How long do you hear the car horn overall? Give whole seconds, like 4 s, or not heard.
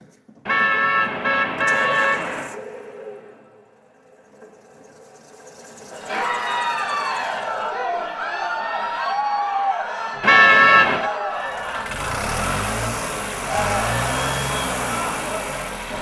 3 s.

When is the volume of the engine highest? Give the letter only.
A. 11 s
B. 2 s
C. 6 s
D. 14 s
D.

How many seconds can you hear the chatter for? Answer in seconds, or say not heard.
10 s.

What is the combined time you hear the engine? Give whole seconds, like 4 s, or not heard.
12 s.